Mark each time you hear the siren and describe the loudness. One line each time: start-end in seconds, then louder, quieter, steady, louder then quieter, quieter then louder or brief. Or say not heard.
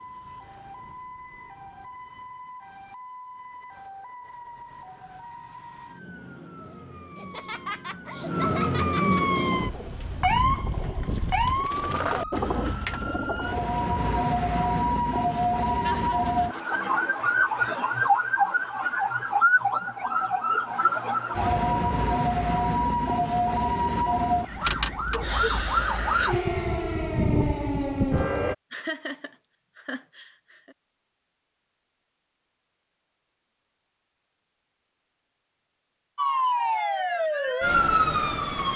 0.0-28.6 louder
36.1-38.7 brief.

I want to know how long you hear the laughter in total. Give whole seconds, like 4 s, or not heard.
5 s.